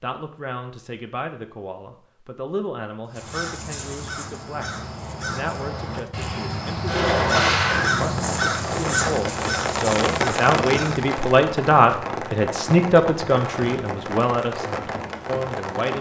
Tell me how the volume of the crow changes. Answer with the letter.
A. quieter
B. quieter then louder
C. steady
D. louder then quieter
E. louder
D.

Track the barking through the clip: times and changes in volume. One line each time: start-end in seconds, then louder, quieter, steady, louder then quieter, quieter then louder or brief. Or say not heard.
not heard.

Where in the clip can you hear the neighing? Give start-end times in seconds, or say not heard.
6.8-7.9.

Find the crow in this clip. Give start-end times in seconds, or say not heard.
3.0-11.1.